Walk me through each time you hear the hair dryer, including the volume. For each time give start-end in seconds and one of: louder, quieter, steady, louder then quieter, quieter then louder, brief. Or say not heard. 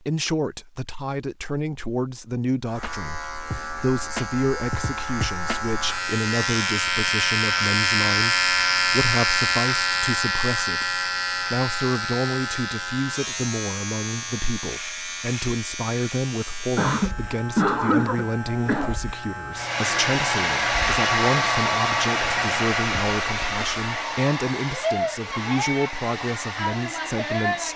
19.5-27.7 quieter.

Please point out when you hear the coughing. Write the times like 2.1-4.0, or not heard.
16.8-18.9.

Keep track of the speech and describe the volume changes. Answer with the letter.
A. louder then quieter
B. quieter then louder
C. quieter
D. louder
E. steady
E.